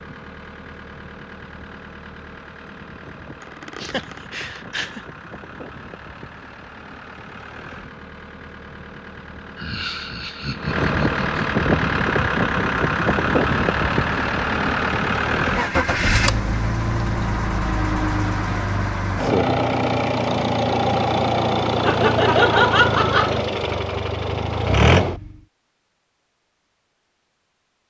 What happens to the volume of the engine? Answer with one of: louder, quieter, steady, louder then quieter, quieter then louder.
louder.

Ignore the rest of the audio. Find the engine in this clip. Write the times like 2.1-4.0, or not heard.
0.0-25.4.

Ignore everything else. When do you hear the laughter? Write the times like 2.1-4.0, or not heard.
3.4-5.0, 9.6-11.4, 21.8-23.4.